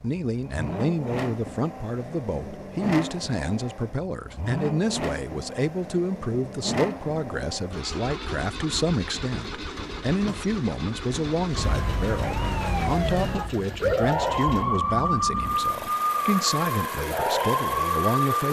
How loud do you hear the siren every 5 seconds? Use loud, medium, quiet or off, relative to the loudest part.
off, off, loud, loud.